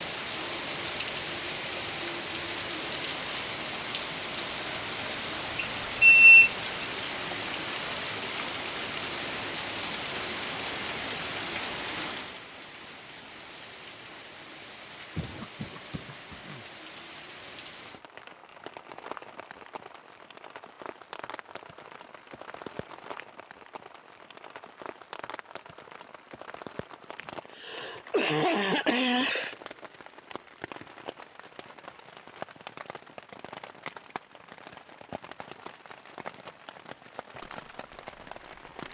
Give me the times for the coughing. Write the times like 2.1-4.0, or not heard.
15.2-16.6, 27.1-29.6.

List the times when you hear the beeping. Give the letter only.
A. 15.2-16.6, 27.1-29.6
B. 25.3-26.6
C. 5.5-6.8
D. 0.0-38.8
C.